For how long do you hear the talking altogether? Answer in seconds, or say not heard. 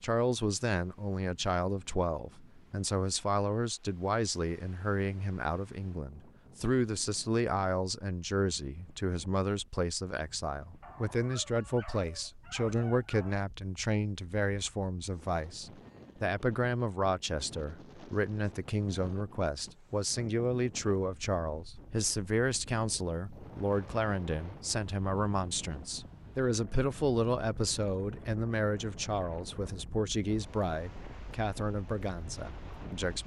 33 s.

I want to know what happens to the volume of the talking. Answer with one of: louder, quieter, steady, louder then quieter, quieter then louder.
steady.